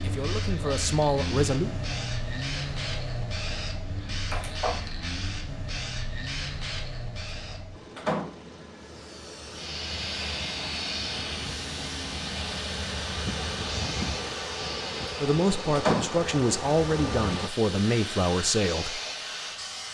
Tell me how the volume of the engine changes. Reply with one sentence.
The volume of the engine goes down, then up.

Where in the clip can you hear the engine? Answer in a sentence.
The engine can be heard from 0.0 to 17.5 s.